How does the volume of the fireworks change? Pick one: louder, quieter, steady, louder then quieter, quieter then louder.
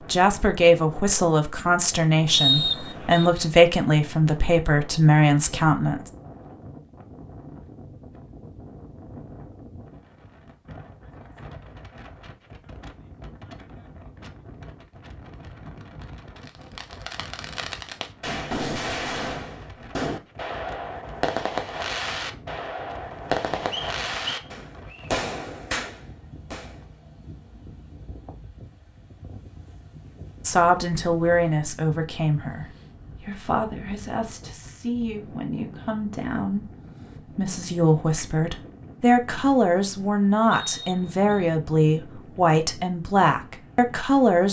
steady.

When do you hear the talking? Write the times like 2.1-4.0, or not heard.
0.1-6.1, 30.4-44.4.